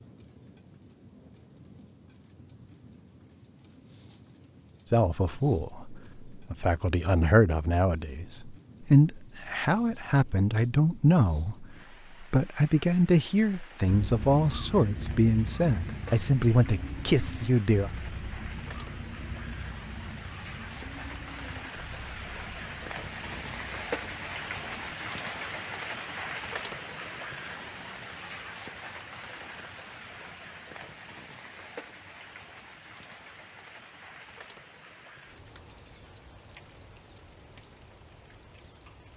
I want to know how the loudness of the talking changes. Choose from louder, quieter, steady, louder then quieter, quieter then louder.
steady.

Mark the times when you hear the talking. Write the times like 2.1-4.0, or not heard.
4.9-17.9.